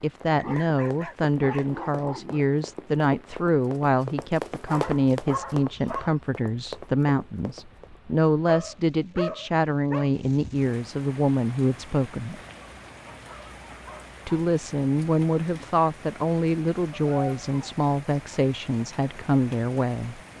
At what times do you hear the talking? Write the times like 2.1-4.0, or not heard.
0.0-12.3, 14.2-20.2.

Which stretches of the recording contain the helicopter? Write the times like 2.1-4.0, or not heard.
not heard.